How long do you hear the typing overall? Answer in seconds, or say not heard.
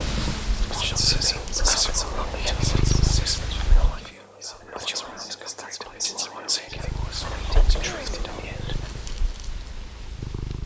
not heard.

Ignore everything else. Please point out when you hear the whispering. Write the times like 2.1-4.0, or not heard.
0.5-8.8.